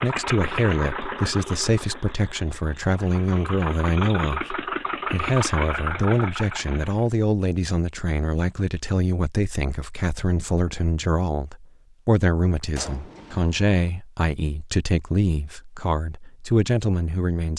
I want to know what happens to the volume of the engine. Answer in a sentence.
The loudness of the engine goes down, then up.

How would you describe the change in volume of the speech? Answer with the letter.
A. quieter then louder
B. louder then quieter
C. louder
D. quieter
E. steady
E.